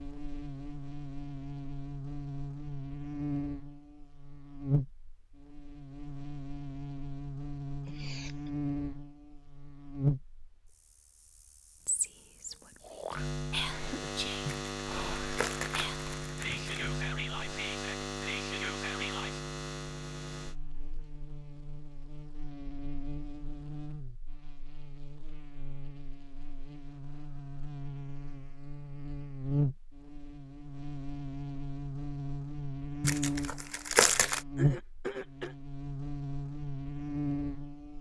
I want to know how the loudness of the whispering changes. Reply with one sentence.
The loudness of the whispering stays about the same.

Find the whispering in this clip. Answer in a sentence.
The whispering can be heard from 11.8 to 19.4 s.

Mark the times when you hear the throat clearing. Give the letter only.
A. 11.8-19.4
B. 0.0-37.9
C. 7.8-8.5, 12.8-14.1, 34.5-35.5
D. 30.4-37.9
C.